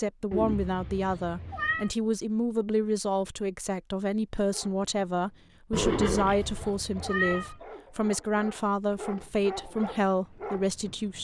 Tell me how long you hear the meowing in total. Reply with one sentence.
The meowing can be heard for 3 seconds in total.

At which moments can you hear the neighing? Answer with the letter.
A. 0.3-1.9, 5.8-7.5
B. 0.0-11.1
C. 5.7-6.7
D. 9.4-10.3
C.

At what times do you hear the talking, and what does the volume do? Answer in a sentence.
The talking can be heard from 0.0 to 11.1 s, at a steady volume.